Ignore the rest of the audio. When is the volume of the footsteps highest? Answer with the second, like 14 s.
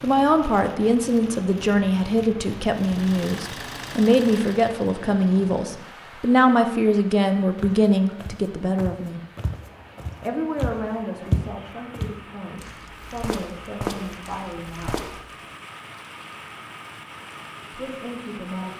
11 s.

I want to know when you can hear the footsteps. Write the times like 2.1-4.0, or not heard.
7.5-15.3.